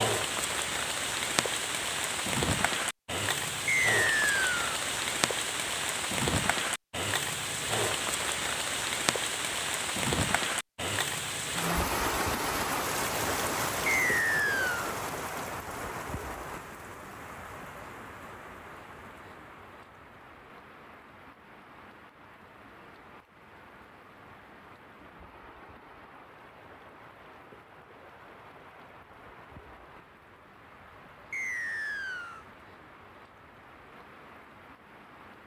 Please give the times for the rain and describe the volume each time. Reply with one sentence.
You can hear the rain from 0.0 to 35.4 s, getting quieter.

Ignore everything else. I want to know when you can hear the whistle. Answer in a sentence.
You can hear the whistle from 3.6 to 4.5 s, from 13.8 to 14.8 s and from 31.3 to 32.5 s.